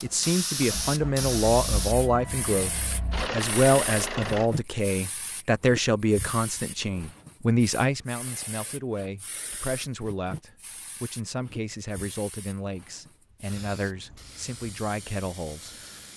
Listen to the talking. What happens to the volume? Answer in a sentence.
The volume of the talking goes down.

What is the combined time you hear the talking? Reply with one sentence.
The talking can be heard for 16 seconds in total.